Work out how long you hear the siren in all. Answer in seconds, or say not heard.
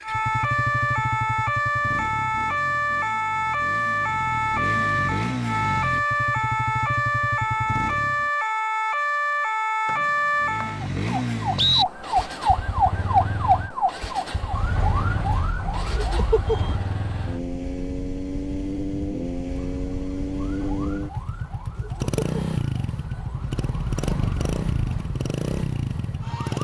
24 s.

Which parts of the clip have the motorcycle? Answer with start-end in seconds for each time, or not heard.
0.0-8.3, 10.3-26.5.